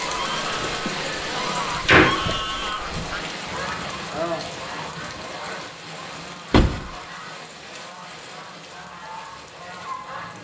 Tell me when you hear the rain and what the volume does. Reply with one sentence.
The rain can be heard from 0.0 to 10.4 s, getting quieter.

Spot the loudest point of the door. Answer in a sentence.
The loudest moment of the door is at 2 seconds.